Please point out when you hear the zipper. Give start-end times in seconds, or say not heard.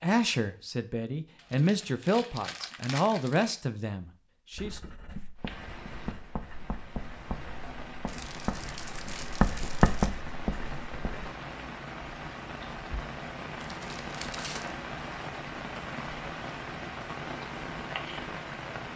not heard.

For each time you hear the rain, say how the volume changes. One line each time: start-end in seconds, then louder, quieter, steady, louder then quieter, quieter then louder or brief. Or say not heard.
5.3-18.9 louder.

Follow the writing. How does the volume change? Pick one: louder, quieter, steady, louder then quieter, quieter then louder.
louder.